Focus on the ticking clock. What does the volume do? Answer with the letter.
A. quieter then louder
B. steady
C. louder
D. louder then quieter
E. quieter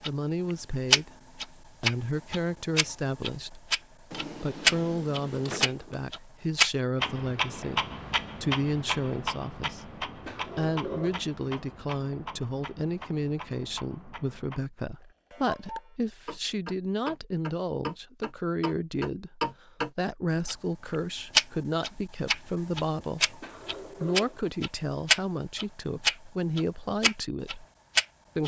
A.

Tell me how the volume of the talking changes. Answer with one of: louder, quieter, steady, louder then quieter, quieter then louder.
steady.